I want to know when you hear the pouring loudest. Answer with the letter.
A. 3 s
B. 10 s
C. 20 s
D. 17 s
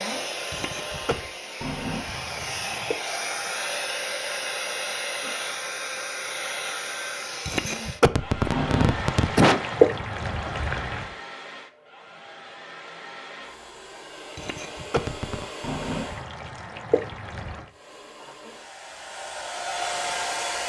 B.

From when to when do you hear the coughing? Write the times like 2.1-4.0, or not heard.
0.5-1.1, 7.5-9.6, 14.3-15.4.